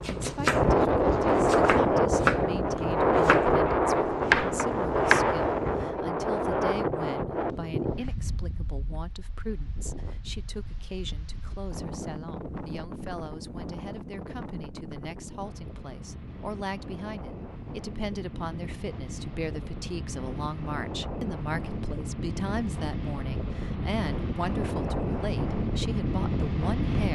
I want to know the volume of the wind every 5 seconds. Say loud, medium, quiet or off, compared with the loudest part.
loud, medium, quiet, quiet, medium, medium.